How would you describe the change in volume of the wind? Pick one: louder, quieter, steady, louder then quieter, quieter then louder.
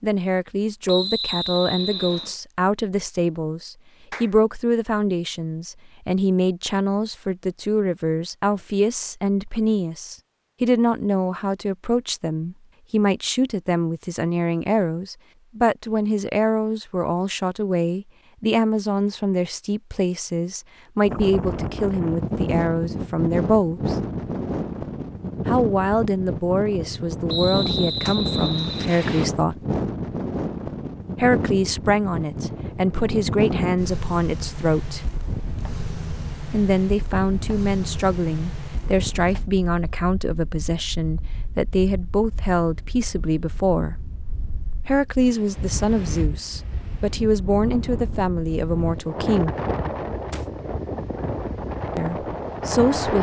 quieter then louder.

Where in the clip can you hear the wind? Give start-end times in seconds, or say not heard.
21.0-53.1.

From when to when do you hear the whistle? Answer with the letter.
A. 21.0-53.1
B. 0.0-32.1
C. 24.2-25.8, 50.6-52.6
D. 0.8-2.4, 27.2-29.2
D.